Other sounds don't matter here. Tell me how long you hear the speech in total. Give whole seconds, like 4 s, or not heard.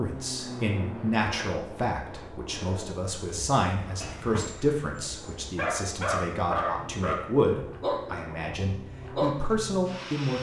10 s.